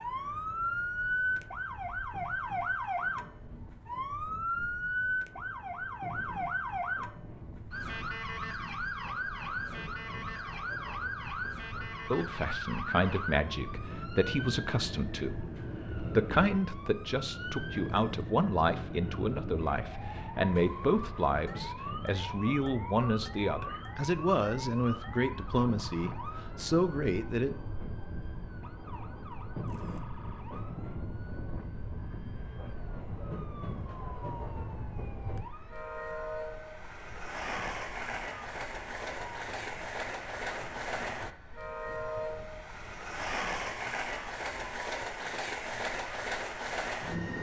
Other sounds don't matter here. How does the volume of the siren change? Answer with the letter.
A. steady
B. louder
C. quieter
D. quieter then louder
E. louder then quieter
C.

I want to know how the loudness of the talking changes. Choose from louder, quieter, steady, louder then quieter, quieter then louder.
steady.